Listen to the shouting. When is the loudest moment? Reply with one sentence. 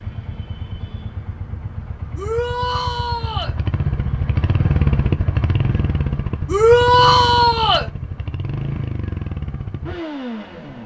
The loudest moment of the shouting is at 7 seconds.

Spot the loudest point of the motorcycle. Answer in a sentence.
The loudest moment of the motorcycle is at 5 seconds.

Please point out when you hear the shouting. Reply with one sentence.
You can hear the shouting from 2.1 to 3.5 s and from 6.5 to 7.9 s.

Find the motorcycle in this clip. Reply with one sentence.
You can hear the motorcycle from 0.0 to 10.8 s.